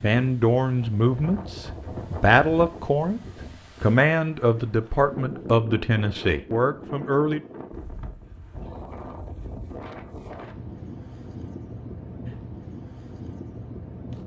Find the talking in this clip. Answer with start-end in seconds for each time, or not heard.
0.0-3.2, 3.8-7.4.